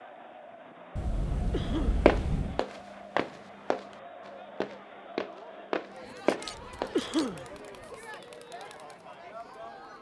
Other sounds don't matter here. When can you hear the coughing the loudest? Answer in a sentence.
The volume of the coughing peaks at 7 seconds.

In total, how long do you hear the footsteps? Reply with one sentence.
You can hear the footsteps for 5 seconds altogether.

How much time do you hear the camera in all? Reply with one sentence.
You can hear the camera for 3 seconds altogether.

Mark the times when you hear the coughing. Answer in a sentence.
You can hear the coughing from 1.5 to 2.0 s and from 7.0 to 7.5 s.